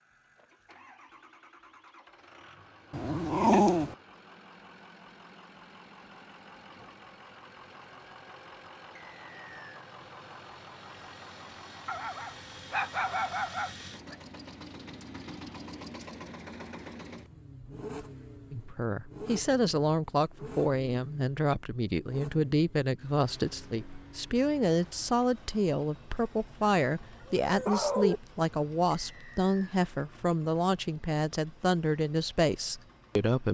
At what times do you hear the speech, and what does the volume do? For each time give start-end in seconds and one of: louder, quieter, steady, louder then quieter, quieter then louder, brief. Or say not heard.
18.5-33.5 steady.